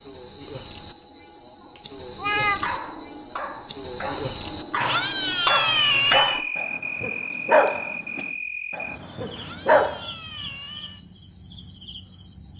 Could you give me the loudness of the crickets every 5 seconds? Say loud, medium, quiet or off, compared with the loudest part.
loud, loud, medium.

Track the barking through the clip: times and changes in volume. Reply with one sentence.
You can hear the barking from 2.4 to 10.0 s, getting louder then quieter.